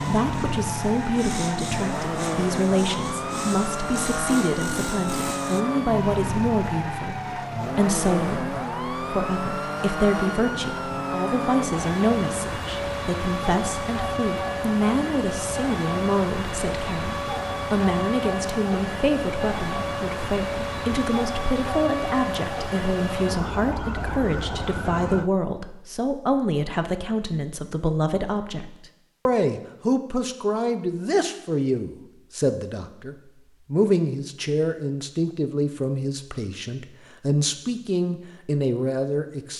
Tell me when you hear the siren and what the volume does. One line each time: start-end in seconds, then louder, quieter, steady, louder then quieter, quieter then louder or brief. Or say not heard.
0.0-25.3 steady.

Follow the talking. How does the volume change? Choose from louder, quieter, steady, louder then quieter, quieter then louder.
steady.